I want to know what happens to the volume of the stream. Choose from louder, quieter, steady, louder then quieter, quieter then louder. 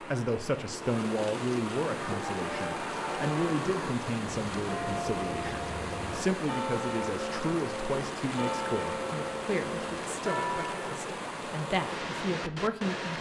steady.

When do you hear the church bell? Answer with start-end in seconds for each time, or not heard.
1.9-10.9.